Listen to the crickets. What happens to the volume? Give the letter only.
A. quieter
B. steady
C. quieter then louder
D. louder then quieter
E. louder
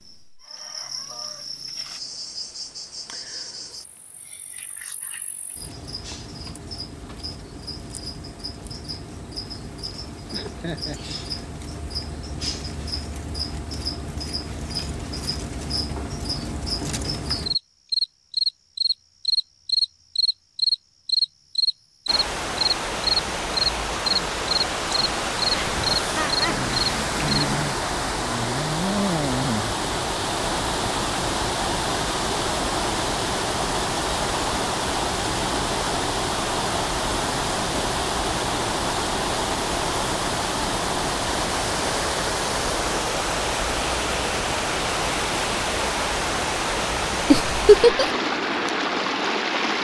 E.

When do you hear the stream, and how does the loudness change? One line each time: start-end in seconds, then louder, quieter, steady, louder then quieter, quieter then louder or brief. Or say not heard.
22.1-49.8 steady.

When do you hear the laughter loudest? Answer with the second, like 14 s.
48 s.